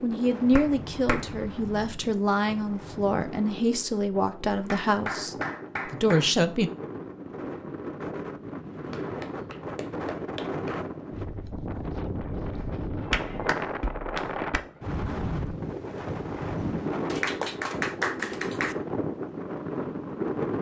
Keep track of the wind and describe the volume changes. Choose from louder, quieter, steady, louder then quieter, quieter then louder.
louder.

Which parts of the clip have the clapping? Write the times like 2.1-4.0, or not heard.
0.5-1.3, 4.6-6.3, 8.8-10.8, 12.6-14.6, 17.1-18.8.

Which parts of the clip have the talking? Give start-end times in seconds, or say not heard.
0.0-6.7.